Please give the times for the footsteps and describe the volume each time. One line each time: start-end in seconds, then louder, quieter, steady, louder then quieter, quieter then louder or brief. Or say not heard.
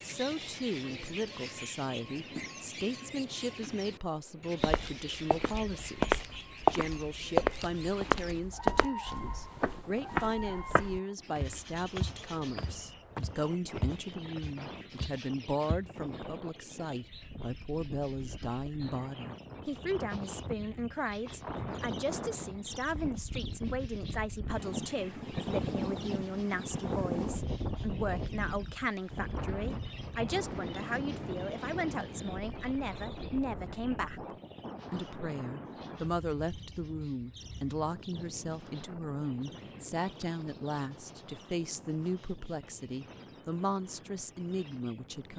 4.6-15.9 quieter.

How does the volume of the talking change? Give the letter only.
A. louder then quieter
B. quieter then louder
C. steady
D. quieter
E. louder
C.